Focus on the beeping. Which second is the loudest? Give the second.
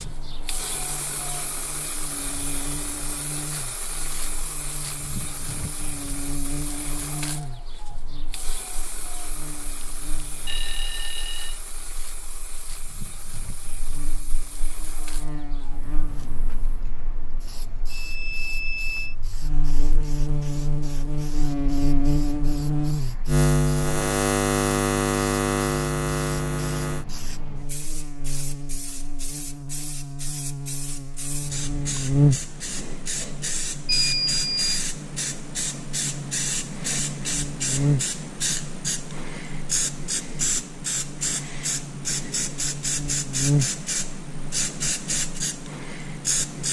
34 s.